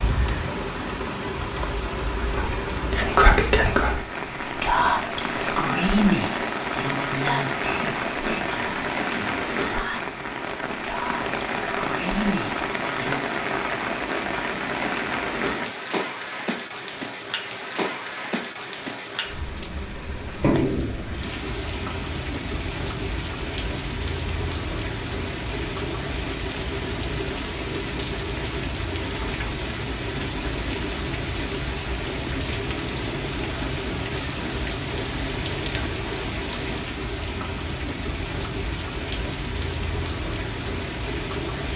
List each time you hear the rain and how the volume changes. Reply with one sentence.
You can hear the rain from 0.0 to 41.7 s, at a steady volume.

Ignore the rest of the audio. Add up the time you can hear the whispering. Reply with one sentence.
You can hear the whispering for 11 seconds altogether.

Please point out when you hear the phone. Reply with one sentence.
The phone can't be heard in this clip.